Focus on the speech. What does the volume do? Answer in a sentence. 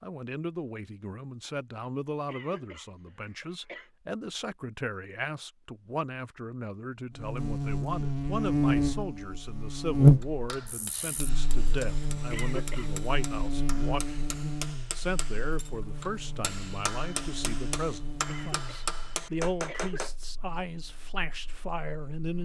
The loudness of the speech stays about the same.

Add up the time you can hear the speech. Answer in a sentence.
You can hear the speech for 22 seconds altogether.